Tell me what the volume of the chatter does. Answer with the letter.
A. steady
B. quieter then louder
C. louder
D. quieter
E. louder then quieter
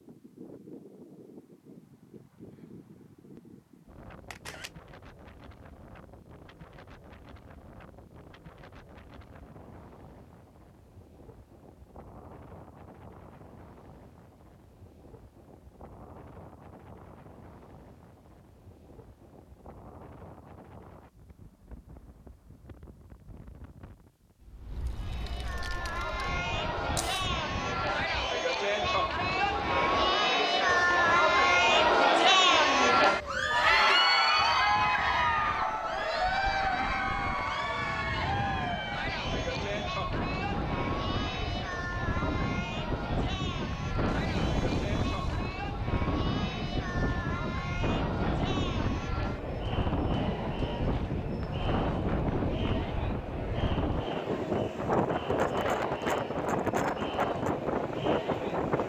D.